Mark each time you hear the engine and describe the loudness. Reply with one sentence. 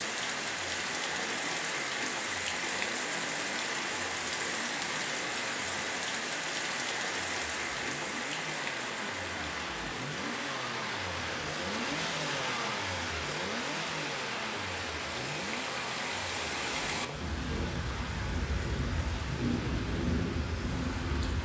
You can hear the engine from 0.0 to 21.3 s, getting louder then quieter.